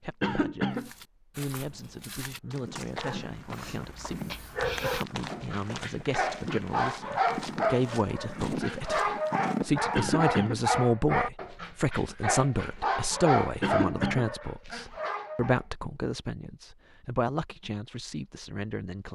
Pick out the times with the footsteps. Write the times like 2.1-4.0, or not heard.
0.8-9.9.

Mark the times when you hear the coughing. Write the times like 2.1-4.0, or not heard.
0.2-0.9, 9.9-10.7, 13.6-14.3.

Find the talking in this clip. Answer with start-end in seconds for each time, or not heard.
0.0-19.1.